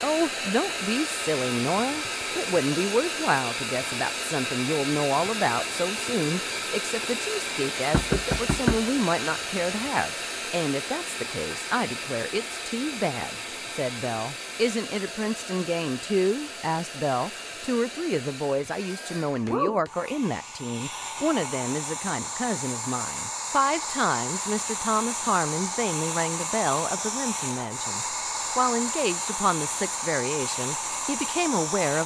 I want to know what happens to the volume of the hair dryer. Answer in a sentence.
The loudness of the hair dryer goes down, then up.